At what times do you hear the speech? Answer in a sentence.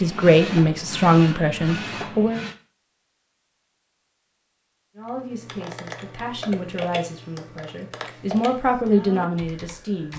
You can hear the speech from 0.0 to 2.4 s and from 5.0 to 10.1 s.